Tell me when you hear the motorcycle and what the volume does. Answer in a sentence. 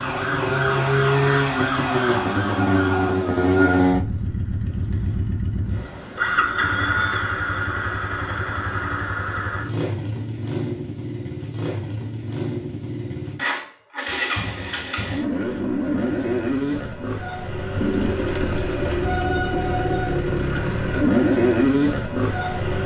You can hear the motorcycle from 0.0 to 22.8 s, getting quieter then louder.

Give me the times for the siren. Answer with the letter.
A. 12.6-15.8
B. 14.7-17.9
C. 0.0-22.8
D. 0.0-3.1
D.